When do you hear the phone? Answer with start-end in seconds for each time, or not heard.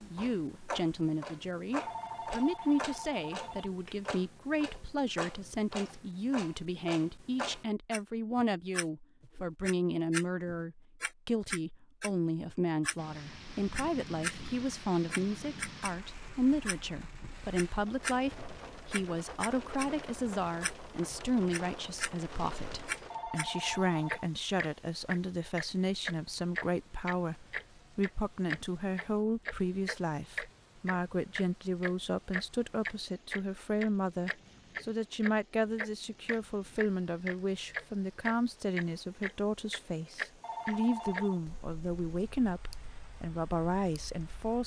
1.8-3.7, 23.1-24.2, 40.4-41.4.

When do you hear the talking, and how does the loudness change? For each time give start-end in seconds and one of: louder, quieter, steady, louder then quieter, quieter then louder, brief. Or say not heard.
0.1-44.6 steady.